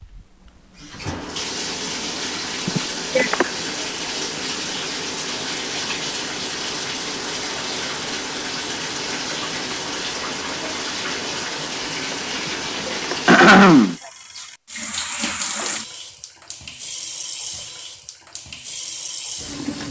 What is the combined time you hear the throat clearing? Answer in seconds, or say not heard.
2 s.